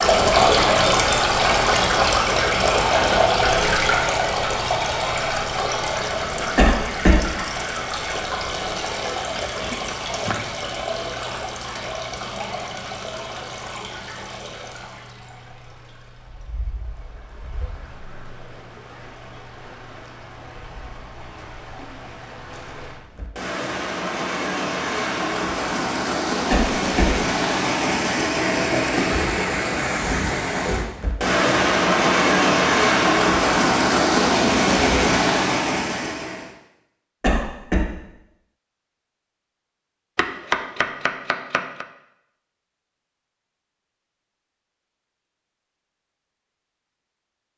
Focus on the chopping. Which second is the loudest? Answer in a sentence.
The loudest moment of the chopping is at 41 seconds.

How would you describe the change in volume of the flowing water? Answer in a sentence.
The volume of the flowing water goes down, then up.